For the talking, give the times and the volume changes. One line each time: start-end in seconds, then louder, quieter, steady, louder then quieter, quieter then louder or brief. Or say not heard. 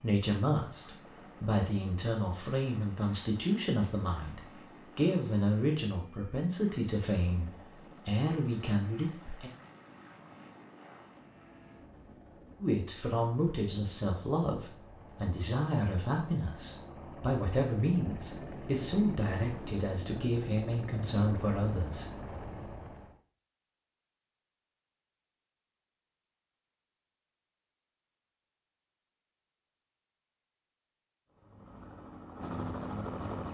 0.0-9.5 steady
12.6-22.1 steady.